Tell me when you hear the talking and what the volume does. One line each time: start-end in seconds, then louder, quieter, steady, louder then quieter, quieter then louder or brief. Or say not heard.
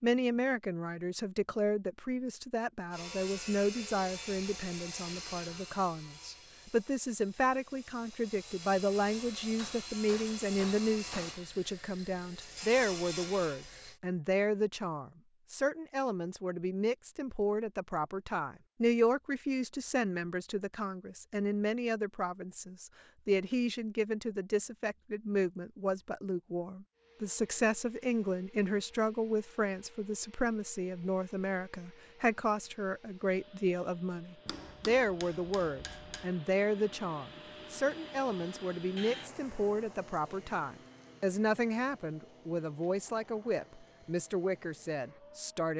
0.0-45.7 steady.